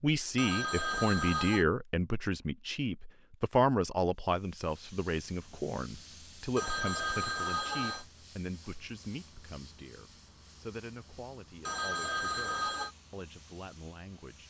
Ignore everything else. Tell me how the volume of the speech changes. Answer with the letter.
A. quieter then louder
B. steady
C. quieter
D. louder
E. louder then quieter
C.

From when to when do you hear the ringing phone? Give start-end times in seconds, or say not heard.
0.3-1.6, 6.5-8.1, 11.7-12.9.